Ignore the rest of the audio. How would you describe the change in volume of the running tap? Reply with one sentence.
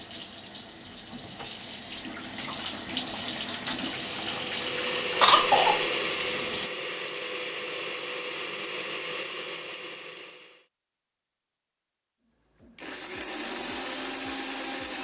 The loudness of the running tap goes up, then down.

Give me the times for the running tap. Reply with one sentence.
You can hear the running tap from 0.0 to 6.7 s.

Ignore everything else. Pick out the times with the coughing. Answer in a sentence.
The coughing can be heard from 5.2 to 5.8 s.